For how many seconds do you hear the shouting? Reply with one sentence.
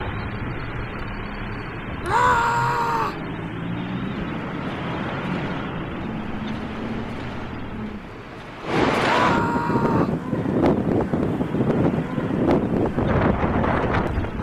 You can hear the shouting for 2 seconds altogether.